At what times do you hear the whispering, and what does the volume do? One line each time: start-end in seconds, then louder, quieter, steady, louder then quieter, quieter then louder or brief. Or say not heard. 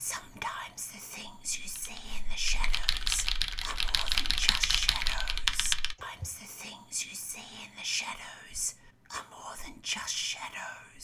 0.0-10.9 steady.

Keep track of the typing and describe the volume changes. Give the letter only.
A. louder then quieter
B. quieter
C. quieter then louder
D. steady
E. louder
E.